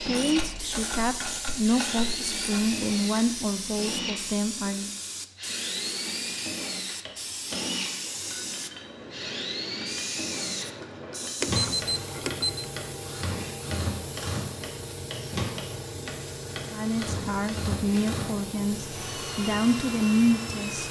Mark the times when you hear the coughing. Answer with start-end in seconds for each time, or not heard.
not heard.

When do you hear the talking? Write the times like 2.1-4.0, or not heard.
0.0-4.9, 16.7-20.8.